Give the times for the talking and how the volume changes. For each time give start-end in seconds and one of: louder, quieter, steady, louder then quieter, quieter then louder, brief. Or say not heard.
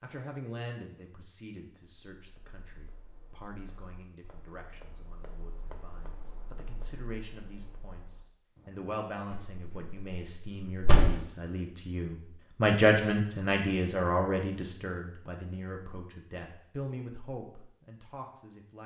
0.0-18.8 louder then quieter.